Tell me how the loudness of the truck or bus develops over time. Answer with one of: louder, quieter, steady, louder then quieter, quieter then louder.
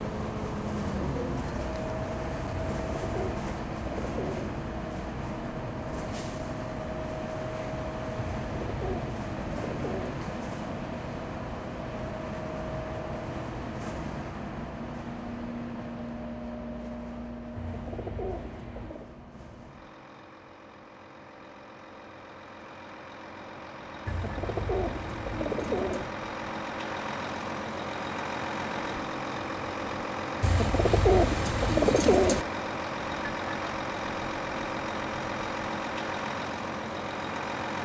quieter then louder.